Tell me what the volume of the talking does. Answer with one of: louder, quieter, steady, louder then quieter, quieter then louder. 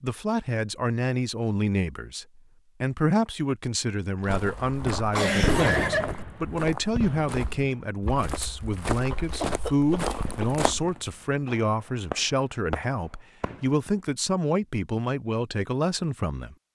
steady.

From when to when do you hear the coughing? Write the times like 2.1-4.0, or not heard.
5.1-6.2, 9.4-10.4.